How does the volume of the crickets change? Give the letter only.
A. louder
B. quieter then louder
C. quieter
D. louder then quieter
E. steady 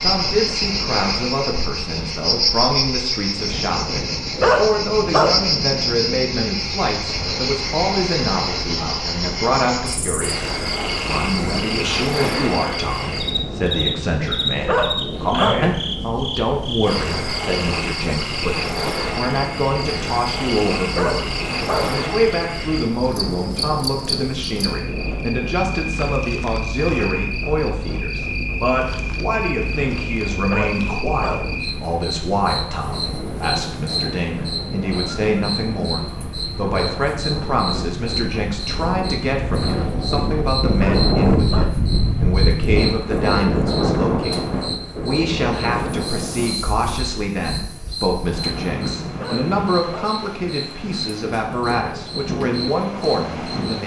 C.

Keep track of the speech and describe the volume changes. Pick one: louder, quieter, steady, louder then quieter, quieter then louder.
steady.